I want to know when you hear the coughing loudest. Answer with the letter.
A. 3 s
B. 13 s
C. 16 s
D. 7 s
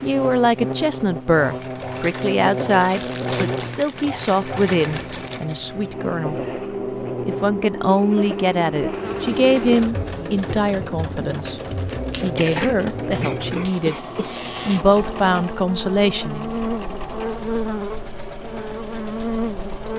B.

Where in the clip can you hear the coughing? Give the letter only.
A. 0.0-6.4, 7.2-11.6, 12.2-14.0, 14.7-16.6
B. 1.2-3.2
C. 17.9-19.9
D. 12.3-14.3
D.